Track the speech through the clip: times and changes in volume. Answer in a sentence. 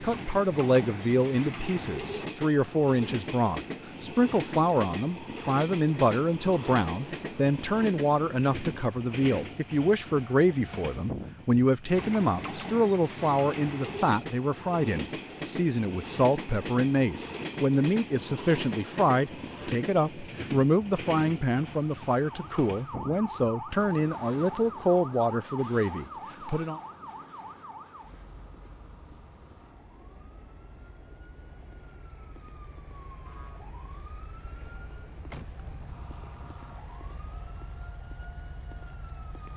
The speech can be heard from 0.0 to 26.8 s, at a steady volume.